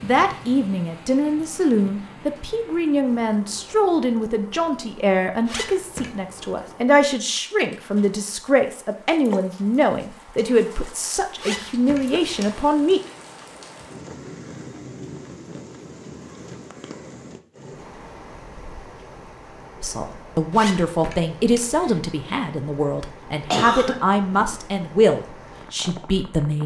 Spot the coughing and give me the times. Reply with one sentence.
You can hear the coughing from 23.5 to 24.6 s.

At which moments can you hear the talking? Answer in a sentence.
You can hear the talking from 0.0 to 13.0 s and from 19.8 to 26.6 s.